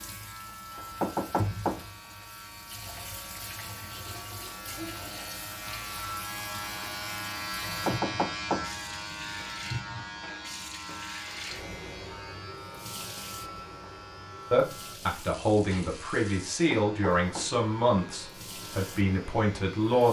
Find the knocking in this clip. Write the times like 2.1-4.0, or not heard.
0.8-1.9, 7.6-8.7, 16.5-17.6.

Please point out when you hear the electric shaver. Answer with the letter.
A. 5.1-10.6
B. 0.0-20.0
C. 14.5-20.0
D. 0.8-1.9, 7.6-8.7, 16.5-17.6
B.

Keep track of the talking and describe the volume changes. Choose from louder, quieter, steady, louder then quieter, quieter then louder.
steady.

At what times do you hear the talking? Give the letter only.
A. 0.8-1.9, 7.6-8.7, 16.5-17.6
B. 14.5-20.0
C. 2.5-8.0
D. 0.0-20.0
B.